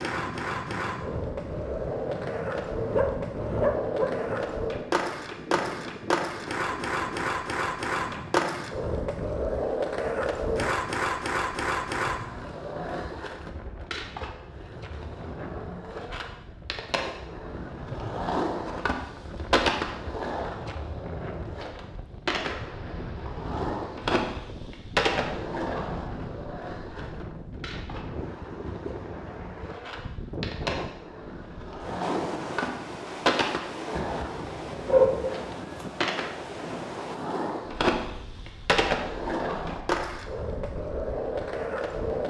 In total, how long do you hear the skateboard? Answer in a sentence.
The skateboard can be heard for 42 seconds in total.